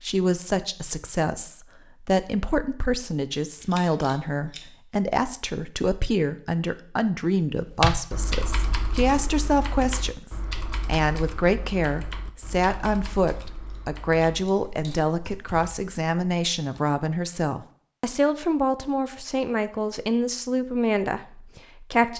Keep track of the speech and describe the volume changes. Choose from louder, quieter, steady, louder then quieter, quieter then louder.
steady.